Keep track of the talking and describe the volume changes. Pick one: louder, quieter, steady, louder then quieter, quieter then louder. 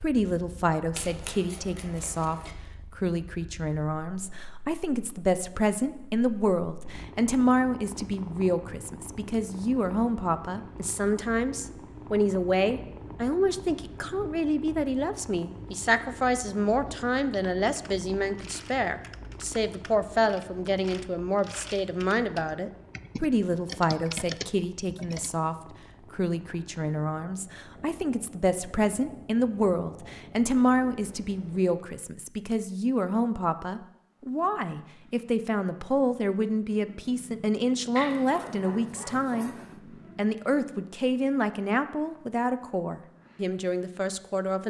steady.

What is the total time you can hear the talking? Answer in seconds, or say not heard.
44 s.